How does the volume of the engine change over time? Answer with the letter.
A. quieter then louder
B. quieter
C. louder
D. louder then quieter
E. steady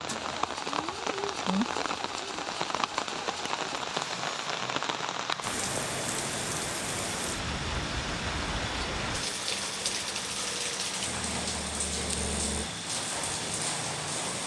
E.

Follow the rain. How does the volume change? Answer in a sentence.
The volume of the rain stays about the same.